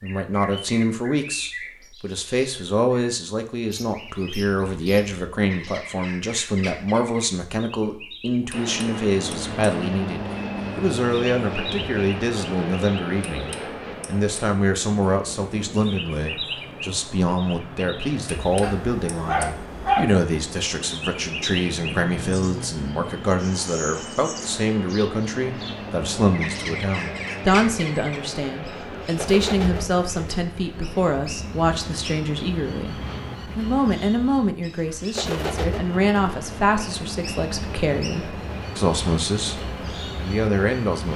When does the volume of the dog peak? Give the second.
20 s.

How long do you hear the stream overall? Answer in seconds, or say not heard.
not heard.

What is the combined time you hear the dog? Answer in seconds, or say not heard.
2 s.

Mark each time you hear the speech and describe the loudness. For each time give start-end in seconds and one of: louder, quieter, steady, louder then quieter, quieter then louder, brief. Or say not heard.
0.0-41.1 steady.